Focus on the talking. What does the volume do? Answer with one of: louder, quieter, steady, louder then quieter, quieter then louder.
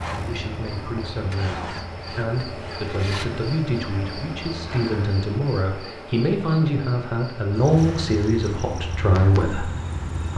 louder.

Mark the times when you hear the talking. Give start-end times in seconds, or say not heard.
0.1-9.7.